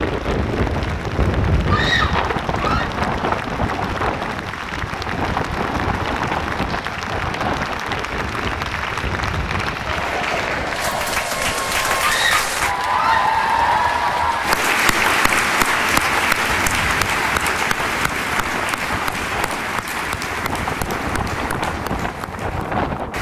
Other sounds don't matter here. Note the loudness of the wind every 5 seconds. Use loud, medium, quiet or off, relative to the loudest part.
loud, loud, medium, medium, loud.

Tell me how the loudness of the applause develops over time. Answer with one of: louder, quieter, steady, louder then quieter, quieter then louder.
louder then quieter.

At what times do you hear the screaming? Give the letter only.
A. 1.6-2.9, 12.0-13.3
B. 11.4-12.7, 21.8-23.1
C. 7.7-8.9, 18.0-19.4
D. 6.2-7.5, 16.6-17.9
A.